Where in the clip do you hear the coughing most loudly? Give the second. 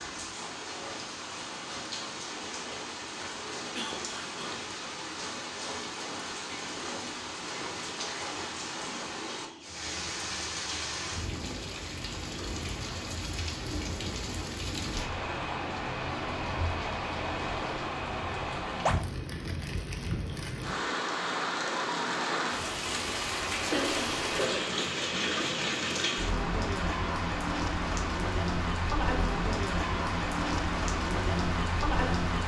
24 s.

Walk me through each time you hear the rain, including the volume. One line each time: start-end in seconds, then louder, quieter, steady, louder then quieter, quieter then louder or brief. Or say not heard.
0.0-32.4 louder.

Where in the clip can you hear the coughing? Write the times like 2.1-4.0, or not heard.
3.6-4.5, 23.7-24.8.